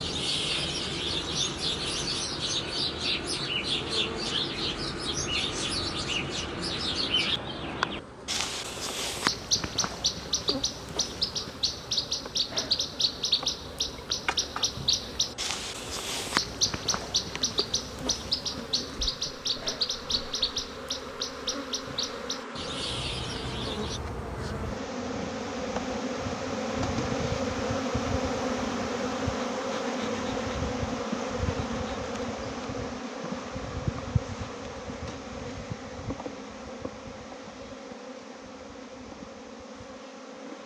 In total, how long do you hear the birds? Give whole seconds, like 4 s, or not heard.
24 s.